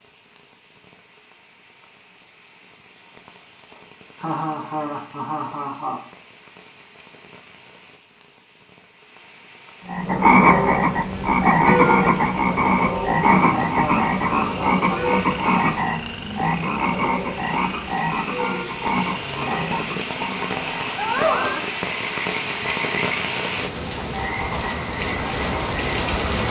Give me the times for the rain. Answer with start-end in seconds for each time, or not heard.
0.0-26.4.